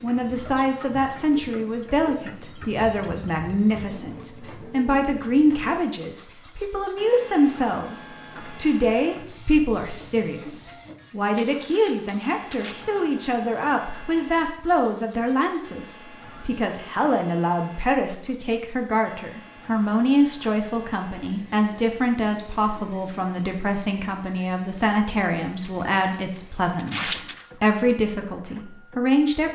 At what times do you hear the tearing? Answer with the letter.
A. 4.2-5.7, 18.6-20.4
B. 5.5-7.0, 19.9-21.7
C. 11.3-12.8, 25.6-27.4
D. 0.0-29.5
C.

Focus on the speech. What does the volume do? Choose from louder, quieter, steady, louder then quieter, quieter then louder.
steady.